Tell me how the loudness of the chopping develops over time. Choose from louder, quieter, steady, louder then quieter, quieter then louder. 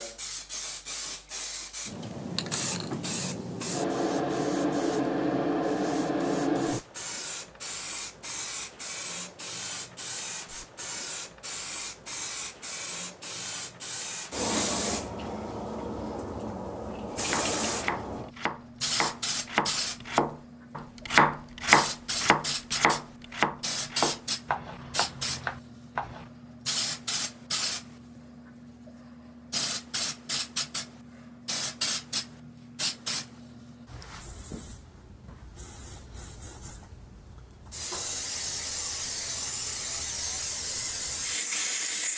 louder then quieter.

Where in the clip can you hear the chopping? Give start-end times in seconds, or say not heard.
16.9-26.3.